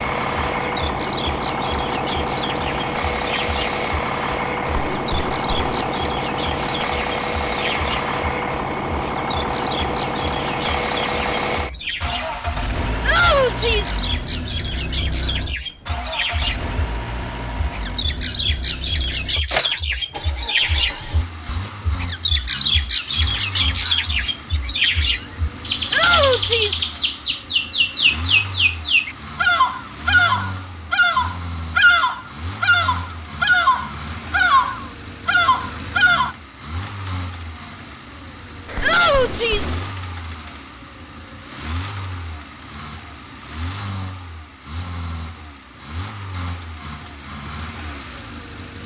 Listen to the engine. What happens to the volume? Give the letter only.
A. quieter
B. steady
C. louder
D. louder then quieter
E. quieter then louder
A.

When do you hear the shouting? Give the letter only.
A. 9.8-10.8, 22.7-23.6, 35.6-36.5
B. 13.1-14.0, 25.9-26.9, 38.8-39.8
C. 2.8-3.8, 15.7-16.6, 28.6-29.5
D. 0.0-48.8
B.